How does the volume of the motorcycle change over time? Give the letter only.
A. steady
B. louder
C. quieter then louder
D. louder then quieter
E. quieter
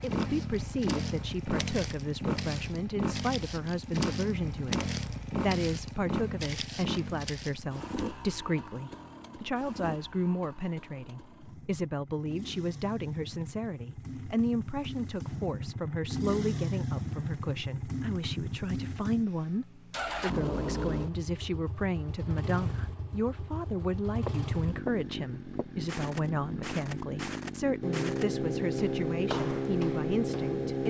C.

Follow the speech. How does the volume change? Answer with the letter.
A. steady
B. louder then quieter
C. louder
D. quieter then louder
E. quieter
A.